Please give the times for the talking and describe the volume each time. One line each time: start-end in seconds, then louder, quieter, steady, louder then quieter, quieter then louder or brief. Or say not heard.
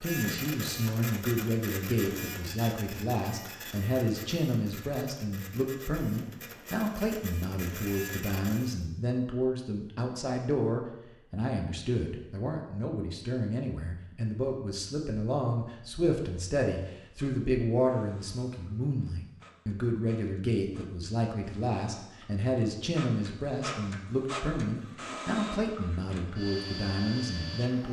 0.0-27.8 steady.